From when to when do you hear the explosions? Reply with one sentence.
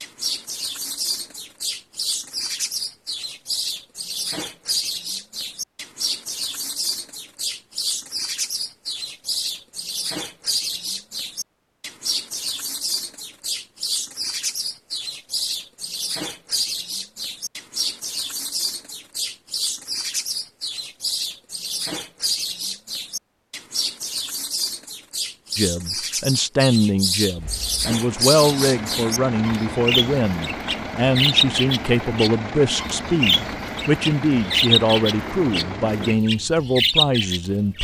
The explosions can't be heard in this clip.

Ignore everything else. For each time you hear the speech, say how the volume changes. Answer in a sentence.
The speech can be heard from 25.6 to 37.7 s, at a steady volume.